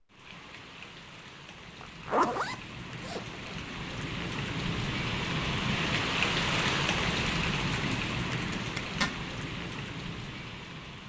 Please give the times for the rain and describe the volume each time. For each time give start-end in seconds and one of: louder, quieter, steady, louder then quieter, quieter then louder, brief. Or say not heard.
0.0-11.0 louder then quieter.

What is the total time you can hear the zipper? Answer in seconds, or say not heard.
2 s.